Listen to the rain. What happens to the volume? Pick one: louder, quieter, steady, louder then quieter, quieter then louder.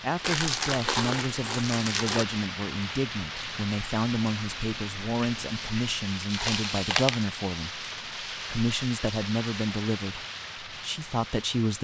steady.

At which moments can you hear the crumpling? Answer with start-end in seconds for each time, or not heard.
0.2-2.2, 6.3-7.2.